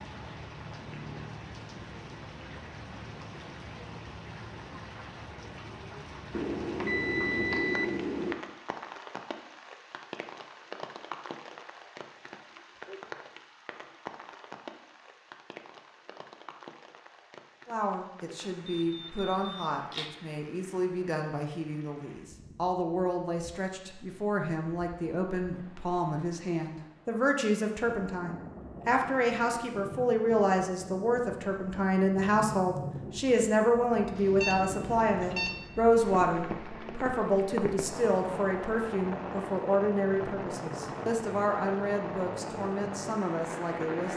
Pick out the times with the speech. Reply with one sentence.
The speech can be heard from 17.6 to 44.1 s.